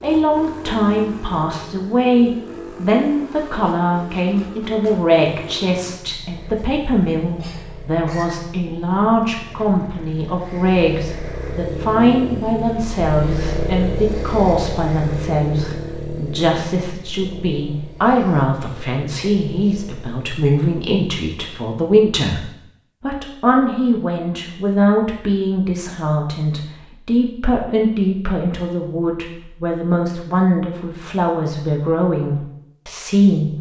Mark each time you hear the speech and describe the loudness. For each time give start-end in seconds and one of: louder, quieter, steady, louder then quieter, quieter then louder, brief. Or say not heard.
0.0-33.5 steady.